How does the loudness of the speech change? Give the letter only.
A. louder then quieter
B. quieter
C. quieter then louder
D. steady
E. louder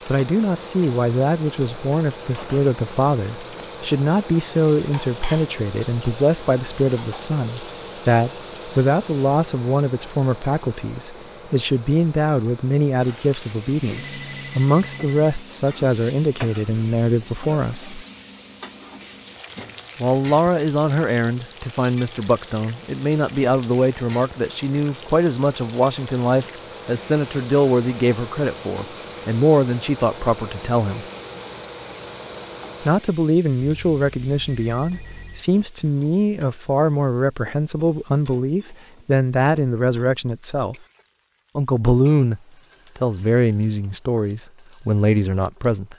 D.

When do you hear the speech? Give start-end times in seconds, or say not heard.
0.1-18.1, 19.9-31.1, 32.8-40.8, 41.5-45.9.